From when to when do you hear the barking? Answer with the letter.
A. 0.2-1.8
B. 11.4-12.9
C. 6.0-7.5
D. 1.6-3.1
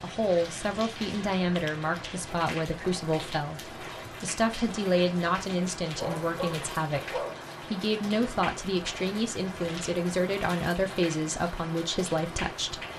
C.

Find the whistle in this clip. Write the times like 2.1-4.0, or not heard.
not heard.